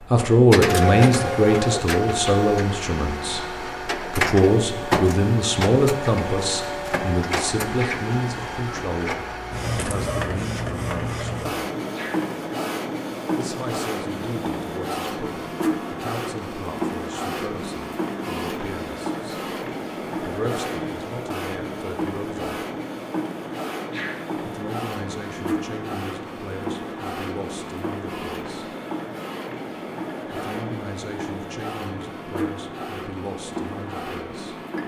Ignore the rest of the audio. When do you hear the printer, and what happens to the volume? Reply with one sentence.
The printer can be heard from 0.0 to 34.8 s, getting quieter.